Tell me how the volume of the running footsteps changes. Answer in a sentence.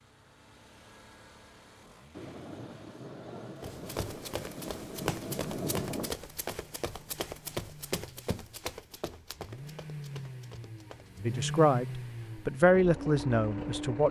The volume of the running footsteps goes down.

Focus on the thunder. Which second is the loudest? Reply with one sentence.
The volume of the thunder peaks at 6 seconds.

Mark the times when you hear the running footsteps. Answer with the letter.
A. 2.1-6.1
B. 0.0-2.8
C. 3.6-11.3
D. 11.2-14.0
C.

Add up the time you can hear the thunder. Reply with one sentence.
The thunder can be heard for 4 seconds in total.